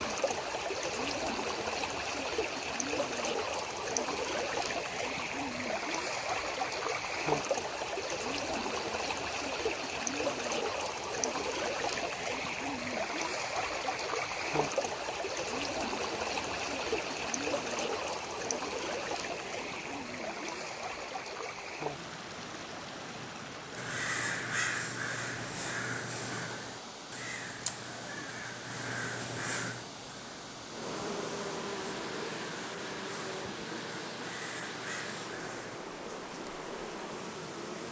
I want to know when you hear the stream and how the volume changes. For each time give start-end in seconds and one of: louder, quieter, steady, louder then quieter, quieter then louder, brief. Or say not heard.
0.0-37.8 quieter.